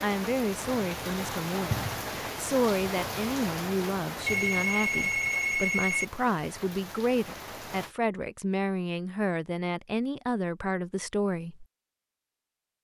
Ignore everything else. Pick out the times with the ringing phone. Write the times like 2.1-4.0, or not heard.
4.2-6.0.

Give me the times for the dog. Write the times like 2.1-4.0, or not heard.
not heard.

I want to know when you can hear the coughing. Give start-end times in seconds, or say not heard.
not heard.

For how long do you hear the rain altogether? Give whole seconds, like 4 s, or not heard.
8 s.